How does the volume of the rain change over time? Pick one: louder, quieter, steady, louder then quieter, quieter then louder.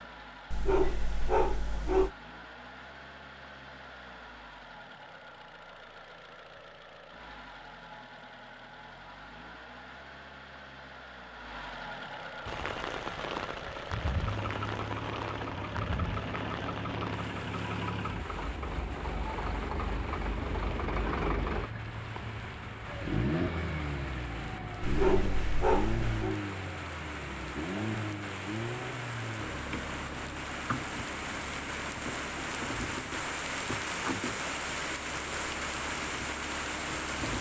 quieter then louder.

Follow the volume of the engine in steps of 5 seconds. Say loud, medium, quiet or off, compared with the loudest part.
quiet, quiet, medium, loud, loud, loud, medium, medium.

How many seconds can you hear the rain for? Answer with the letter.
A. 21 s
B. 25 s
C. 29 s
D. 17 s
B.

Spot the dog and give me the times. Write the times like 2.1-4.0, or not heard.
0.5-2.1, 24.8-26.4.